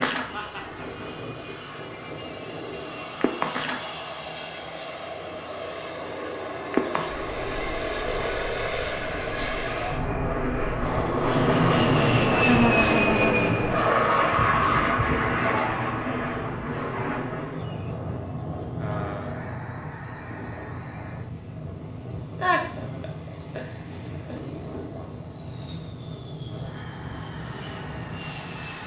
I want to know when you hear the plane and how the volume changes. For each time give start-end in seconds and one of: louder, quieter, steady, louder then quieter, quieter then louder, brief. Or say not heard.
0.1-28.8 louder then quieter.